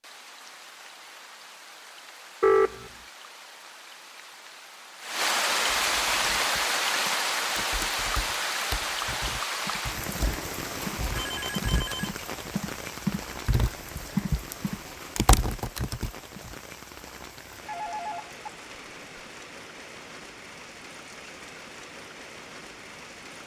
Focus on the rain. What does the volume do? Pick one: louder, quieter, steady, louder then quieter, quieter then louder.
louder then quieter.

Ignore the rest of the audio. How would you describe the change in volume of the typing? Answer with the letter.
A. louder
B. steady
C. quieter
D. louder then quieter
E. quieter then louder
A.